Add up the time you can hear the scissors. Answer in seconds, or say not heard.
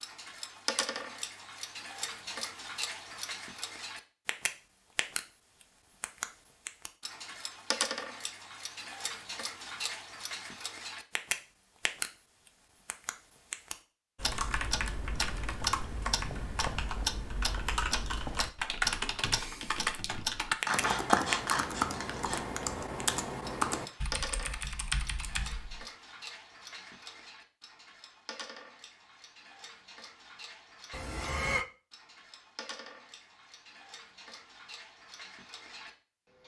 2 s.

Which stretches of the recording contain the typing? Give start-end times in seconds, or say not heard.
14.2-25.9.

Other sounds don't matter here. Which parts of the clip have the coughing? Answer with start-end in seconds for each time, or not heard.
30.9-31.6.